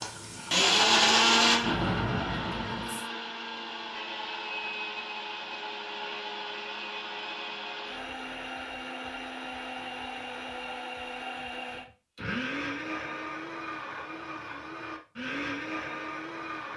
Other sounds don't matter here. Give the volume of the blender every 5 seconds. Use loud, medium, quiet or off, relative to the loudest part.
loud, medium, medium, medium.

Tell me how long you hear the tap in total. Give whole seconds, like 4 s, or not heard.
3 s.